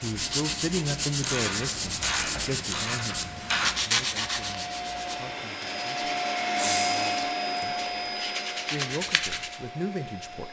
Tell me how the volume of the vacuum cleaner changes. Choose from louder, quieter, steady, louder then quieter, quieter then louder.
louder then quieter.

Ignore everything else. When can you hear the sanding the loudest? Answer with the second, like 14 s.
4 s.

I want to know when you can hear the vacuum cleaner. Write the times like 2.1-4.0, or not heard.
0.0-10.4.